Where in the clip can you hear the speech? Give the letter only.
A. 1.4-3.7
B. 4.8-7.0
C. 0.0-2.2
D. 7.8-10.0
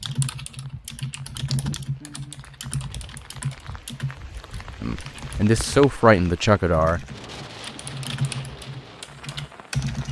B.